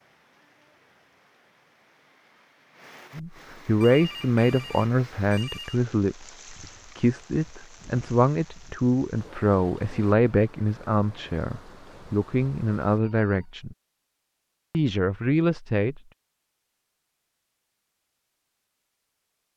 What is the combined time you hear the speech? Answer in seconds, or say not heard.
12 s.